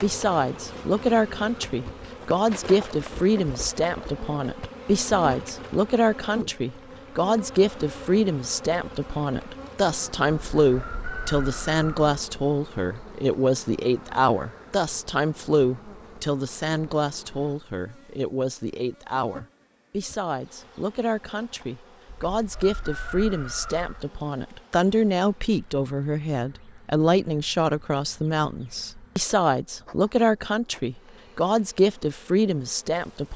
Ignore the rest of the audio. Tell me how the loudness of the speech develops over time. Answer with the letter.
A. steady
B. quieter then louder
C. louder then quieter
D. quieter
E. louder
A.